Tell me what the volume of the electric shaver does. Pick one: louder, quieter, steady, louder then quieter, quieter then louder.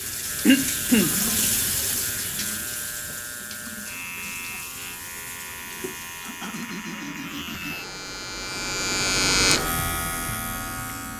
louder.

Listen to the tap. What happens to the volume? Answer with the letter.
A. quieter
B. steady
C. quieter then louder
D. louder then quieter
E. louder
A.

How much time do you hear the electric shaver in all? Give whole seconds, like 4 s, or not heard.
11 s.